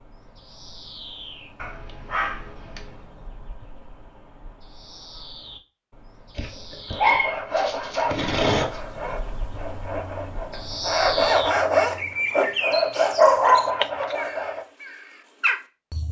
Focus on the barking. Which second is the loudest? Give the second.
13 s.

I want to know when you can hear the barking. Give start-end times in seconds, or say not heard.
1.6-3.0, 6.3-8.8, 12.7-14.2.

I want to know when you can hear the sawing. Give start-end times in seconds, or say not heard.
6.8-14.7.